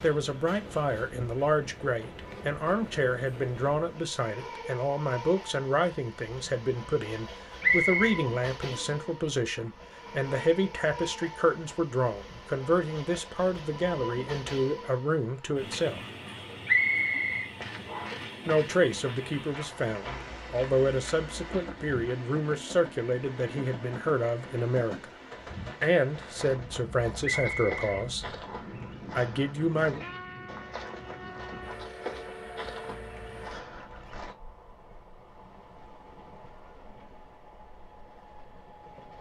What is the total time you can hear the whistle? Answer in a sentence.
You can hear the whistle for 4 seconds altogether.